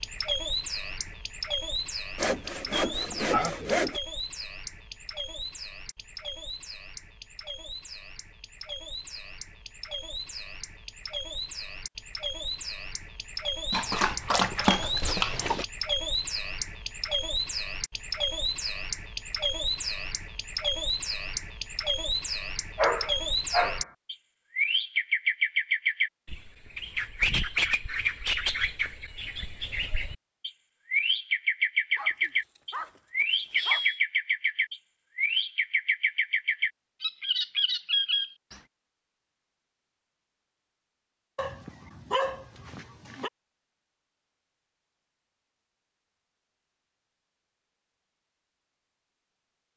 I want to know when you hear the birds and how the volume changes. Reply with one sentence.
The birds can be heard from 0.0 to 38.6 s, getting louder.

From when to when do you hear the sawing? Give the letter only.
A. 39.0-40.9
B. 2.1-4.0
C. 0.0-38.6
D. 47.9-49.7
B.